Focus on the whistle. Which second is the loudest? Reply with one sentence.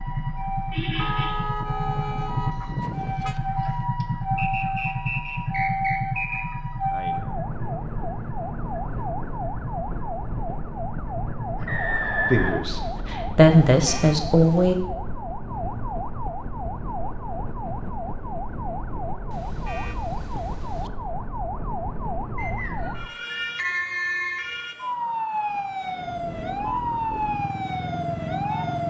The volume of the whistle peaks at 12 seconds.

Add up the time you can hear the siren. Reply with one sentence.
The siren can be heard for 29 seconds in total.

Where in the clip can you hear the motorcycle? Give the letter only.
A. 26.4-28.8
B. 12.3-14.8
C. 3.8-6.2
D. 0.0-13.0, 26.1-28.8
D.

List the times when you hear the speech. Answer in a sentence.
You can hear the speech from 12.3 to 14.8 s.